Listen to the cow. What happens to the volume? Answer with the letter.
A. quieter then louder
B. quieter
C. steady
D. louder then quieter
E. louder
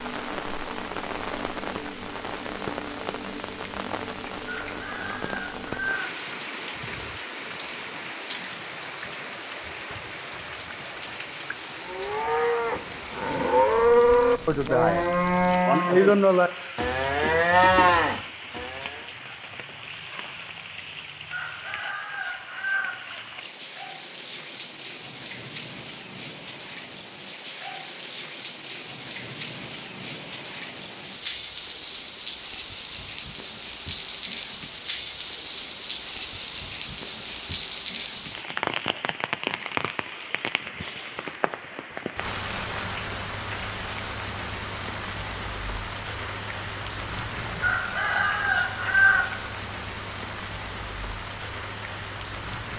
E.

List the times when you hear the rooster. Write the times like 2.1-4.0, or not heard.
4.5-6.1, 21.3-22.9, 47.6-49.2.